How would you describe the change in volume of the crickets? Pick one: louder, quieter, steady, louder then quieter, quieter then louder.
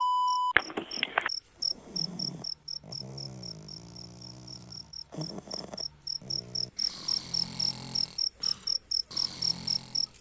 quieter then louder.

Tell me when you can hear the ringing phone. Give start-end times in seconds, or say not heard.
0.6-1.3.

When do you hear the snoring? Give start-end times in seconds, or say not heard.
1.6-10.1.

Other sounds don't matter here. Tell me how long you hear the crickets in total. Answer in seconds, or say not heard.
10 s.